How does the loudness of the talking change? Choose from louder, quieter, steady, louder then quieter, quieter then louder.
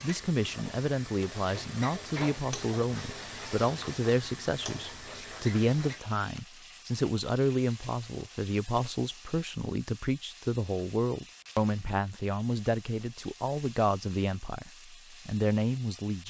steady.